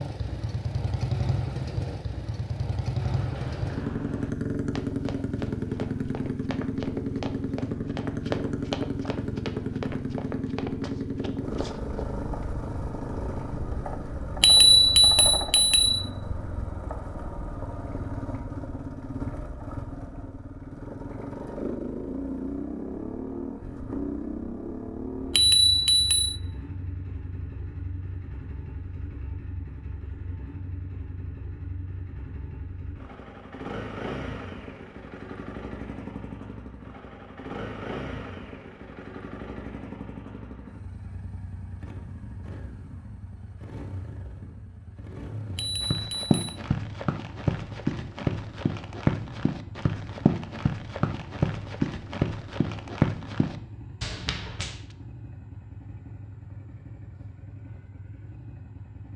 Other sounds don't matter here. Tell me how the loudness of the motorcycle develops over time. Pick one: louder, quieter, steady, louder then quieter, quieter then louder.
quieter.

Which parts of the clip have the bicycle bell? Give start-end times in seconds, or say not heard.
14.4-16.1, 25.3-26.4, 45.5-46.5.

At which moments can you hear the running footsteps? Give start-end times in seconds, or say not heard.
2.9-12.1, 45.5-54.8.